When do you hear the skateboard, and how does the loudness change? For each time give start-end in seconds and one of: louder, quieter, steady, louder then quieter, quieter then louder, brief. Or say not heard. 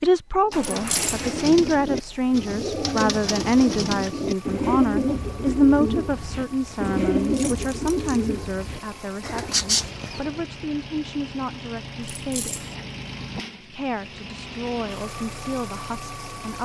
not heard.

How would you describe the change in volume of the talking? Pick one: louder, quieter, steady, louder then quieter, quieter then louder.
quieter.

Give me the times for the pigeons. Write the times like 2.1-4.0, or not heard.
0.5-10.4.